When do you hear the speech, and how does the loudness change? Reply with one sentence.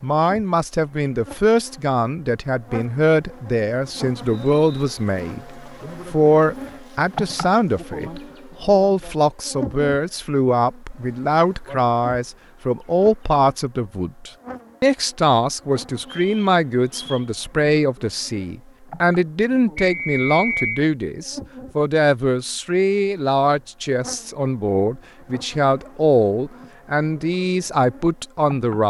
The speech can be heard from 0.0 to 28.8 s, at a steady volume.